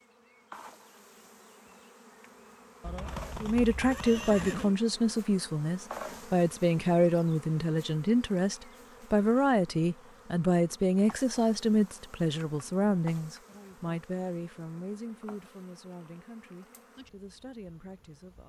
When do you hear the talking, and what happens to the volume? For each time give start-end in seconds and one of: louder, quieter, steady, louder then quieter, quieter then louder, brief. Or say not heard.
3.4-18.4 quieter.